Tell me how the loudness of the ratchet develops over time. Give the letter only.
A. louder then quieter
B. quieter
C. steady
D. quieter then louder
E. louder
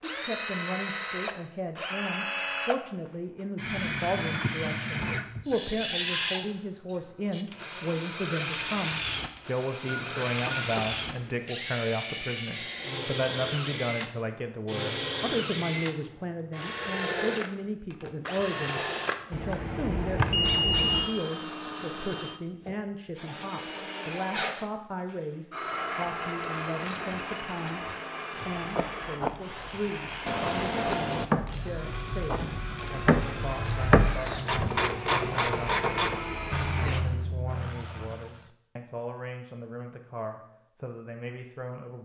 A.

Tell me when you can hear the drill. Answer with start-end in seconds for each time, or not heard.
0.0-37.1.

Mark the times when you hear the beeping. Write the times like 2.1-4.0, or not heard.
9.8-10.8, 19.3-21.1, 30.2-31.2.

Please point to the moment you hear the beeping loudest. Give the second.
31 s.